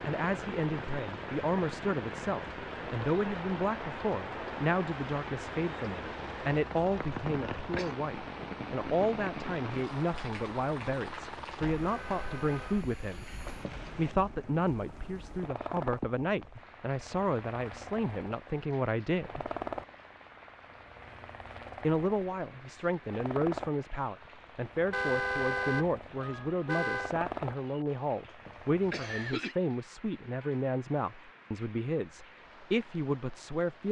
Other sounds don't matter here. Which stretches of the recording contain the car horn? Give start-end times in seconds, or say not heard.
11.8-12.6, 24.9-27.1.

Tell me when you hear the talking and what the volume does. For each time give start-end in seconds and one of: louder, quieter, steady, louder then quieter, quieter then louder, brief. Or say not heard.
0.1-13.3 steady
13.9-19.5 steady
21.8-33.8 steady.